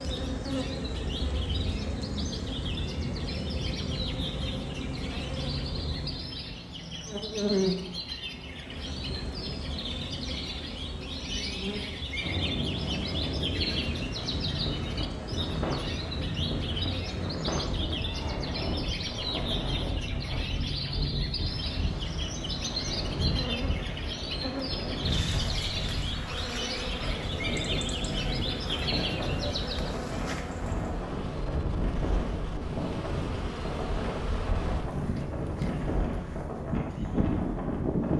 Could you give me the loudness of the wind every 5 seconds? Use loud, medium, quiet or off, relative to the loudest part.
off, off, loud, loud, loud, loud, loud, loud.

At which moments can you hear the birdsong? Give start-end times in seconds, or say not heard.
0.0-29.9.